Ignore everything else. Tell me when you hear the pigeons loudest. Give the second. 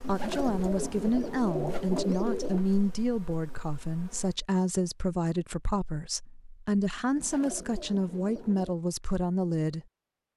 2 s.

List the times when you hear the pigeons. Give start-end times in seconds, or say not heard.
0.0-2.6, 7.2-8.8.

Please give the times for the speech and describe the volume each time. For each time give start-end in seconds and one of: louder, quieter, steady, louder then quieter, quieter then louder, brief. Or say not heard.
0.0-9.8 steady.